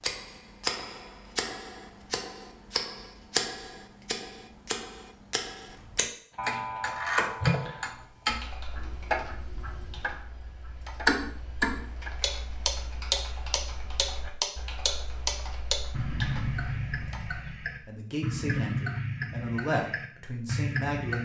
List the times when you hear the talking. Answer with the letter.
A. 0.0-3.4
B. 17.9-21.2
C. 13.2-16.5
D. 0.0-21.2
B.